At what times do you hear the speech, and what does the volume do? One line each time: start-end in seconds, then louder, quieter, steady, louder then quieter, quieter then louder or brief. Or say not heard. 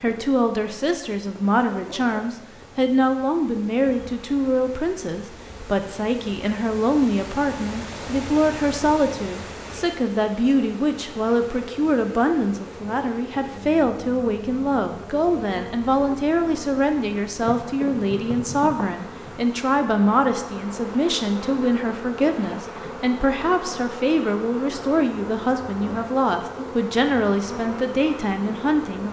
0.0-29.0 steady.